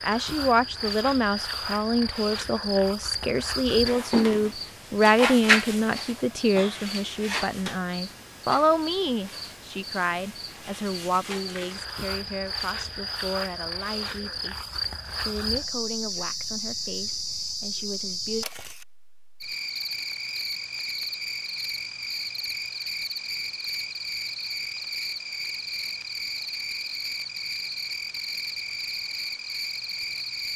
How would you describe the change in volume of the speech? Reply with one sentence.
The volume of the speech goes down.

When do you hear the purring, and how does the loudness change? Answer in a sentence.
You can't hear the purring here.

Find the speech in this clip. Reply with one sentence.
The speech can be heard from 0.0 to 18.4 s.